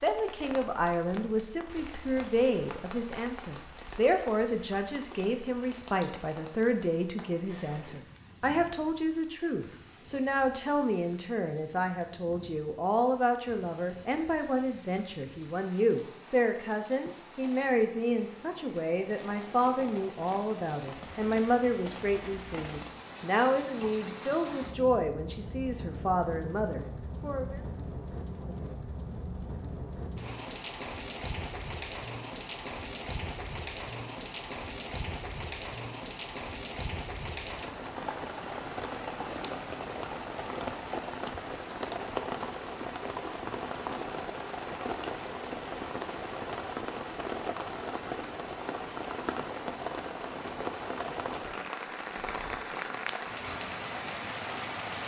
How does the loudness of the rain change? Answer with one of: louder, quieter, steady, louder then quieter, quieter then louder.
louder.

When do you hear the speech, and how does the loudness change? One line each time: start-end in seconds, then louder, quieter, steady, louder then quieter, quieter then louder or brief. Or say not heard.
0.0-27.6 steady.